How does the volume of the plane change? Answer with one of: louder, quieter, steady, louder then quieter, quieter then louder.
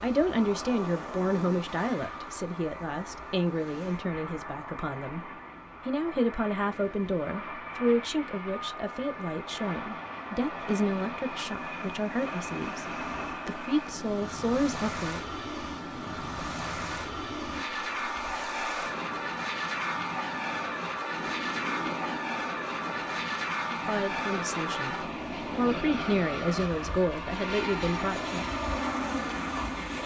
louder.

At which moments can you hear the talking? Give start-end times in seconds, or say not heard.
0.0-15.2, 23.7-28.4.